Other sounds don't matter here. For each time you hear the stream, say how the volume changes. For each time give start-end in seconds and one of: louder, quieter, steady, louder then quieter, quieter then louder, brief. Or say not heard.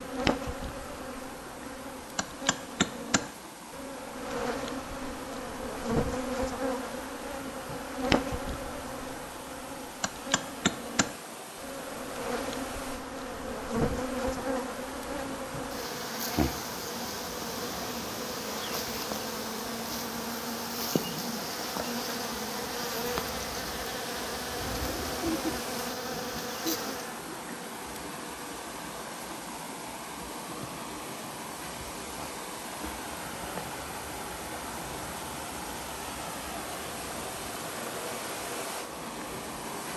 0.0-39.9 louder.